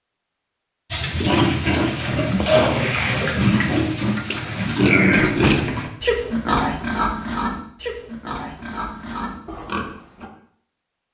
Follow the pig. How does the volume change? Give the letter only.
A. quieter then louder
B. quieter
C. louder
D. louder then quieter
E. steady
B.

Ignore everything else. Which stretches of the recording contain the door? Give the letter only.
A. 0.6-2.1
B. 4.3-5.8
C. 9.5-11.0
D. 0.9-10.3
B.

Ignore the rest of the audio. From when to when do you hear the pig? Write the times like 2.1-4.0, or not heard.
0.9-10.3.